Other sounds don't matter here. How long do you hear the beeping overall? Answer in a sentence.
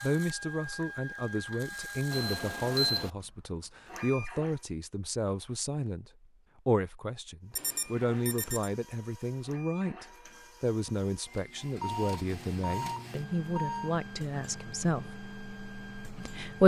The beeping can be heard for 4 seconds in total.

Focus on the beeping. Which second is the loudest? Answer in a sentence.
The loudest moment of the beeping is at 3 seconds.